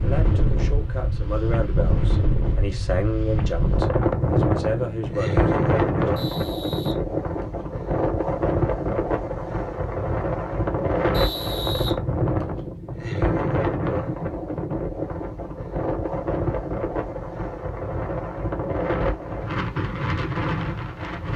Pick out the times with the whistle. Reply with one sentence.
You can hear the whistle from 6.2 to 7.7 s and from 11.1 to 12.6 s.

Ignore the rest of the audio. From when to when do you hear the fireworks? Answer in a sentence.
The fireworks can't be heard in this clip.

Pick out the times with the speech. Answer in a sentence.
The speech can be heard from 0.0 to 6.2 s.